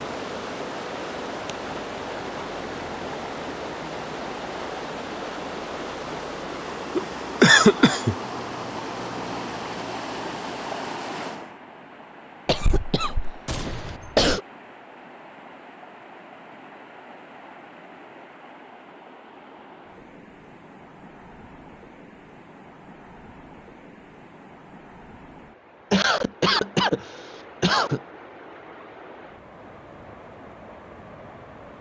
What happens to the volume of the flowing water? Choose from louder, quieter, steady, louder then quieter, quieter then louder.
quieter.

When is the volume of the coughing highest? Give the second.
8 s.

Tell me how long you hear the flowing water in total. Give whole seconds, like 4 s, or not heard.
32 s.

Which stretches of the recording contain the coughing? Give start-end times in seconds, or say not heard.
7.0-8.2, 12.4-14.4, 25.9-28.0.